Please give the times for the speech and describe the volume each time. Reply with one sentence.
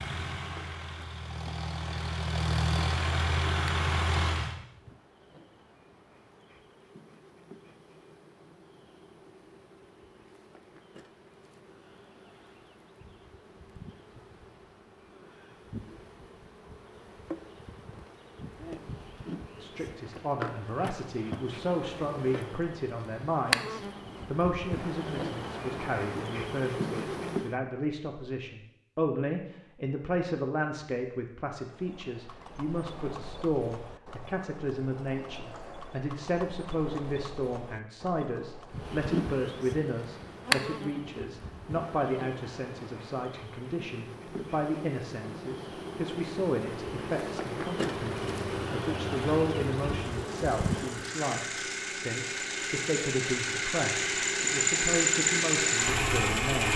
The speech can be heard from 19.6 to 56.7 s, at a steady volume.